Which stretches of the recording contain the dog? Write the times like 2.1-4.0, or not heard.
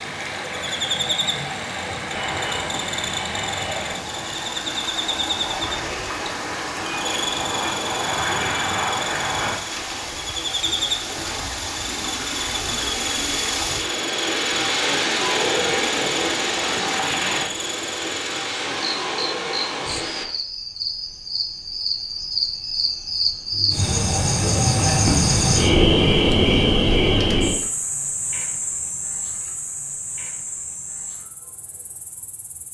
not heard.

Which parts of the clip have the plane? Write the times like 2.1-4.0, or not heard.
2.0-9.6.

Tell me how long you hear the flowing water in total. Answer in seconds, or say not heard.
20 s.